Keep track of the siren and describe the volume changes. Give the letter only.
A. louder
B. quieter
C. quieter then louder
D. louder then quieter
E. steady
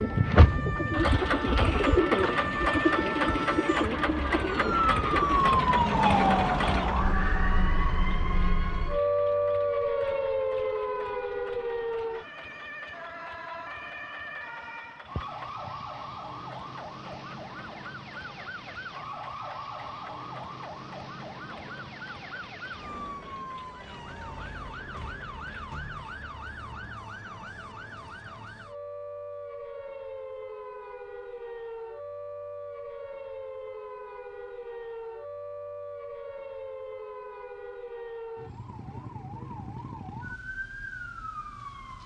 B.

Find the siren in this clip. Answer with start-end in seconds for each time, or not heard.
0.0-42.0.